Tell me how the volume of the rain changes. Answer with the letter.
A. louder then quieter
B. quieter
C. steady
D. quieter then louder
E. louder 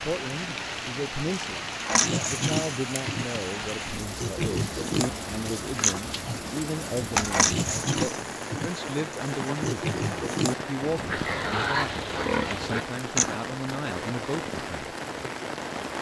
C.